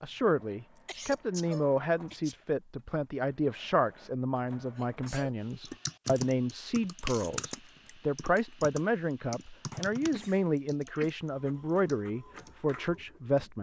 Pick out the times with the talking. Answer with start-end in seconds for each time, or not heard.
0.0-13.5.